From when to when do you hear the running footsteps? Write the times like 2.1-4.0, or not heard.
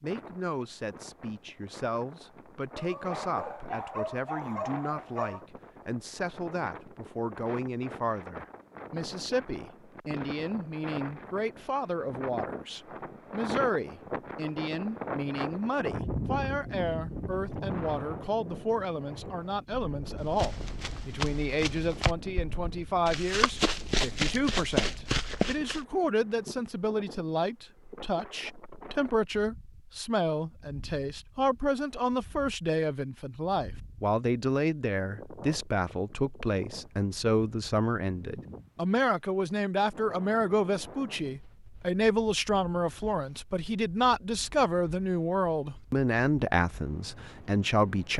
20.1-25.8.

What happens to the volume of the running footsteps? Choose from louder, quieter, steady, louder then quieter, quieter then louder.
louder.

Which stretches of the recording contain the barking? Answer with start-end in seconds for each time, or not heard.
2.8-5.5.